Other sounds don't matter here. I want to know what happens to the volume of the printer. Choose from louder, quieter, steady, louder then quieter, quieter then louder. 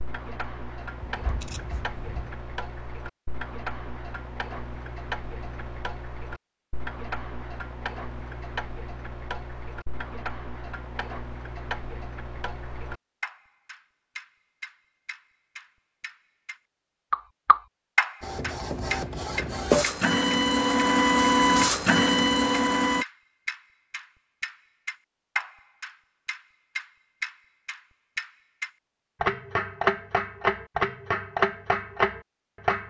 louder.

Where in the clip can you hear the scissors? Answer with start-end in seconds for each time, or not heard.
1.1-2.3.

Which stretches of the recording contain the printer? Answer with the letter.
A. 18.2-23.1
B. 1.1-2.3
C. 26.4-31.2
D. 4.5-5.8
A.